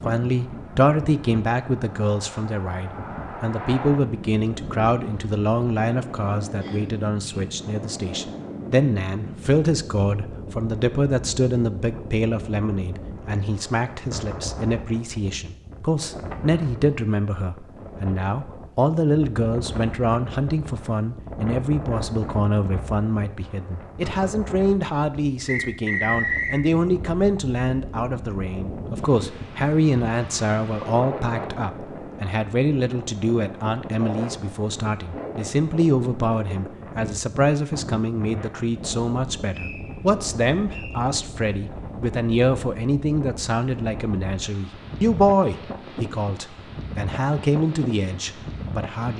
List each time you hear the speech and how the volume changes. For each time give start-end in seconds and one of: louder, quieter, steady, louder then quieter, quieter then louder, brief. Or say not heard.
0.0-49.1 steady.